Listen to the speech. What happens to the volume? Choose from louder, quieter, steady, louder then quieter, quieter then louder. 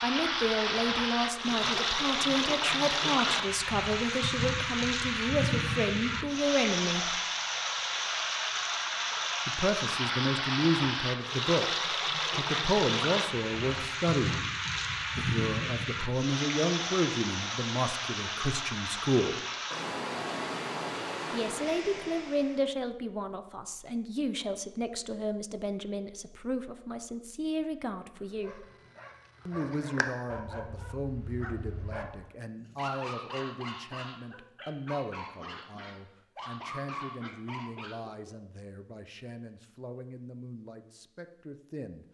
quieter.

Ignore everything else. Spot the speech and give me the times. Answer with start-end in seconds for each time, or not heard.
0.0-7.2, 9.4-14.4, 15.2-19.4, 21.3-28.6, 29.4-42.0.